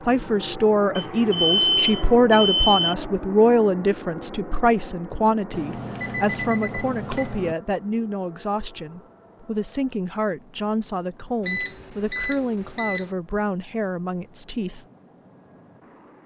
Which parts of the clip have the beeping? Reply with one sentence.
You can hear the beeping from 0.9 to 3.0 s, from 5.5 to 7.5 s and from 11.4 to 13.1 s.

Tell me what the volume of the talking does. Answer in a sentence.
The loudness of the talking goes down.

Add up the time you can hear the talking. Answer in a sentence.
You can hear the talking for 15 seconds altogether.